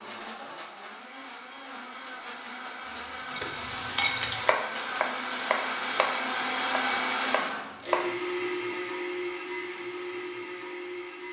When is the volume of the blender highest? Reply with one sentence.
The volume of the blender peaks at 7 seconds.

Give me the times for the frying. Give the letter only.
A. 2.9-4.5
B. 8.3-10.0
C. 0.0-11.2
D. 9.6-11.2
A.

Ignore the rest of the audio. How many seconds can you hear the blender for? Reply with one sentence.
You can hear the blender for 11 seconds altogether.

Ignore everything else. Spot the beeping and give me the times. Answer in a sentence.
The beeping can't be heard in this clip.